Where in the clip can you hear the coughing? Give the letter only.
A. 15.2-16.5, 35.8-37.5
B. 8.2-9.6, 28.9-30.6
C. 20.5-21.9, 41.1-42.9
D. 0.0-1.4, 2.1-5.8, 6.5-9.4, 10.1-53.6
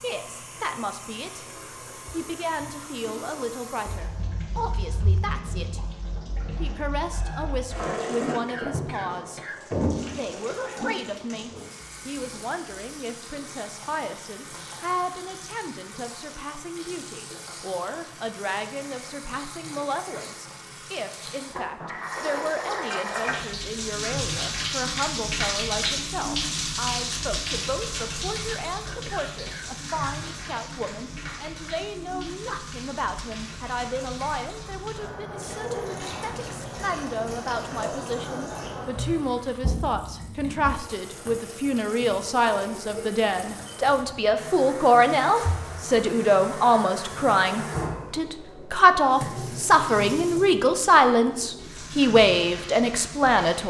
B.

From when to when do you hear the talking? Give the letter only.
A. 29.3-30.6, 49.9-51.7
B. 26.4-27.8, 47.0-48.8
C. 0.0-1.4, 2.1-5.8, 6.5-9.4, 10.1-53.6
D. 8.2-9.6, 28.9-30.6
C.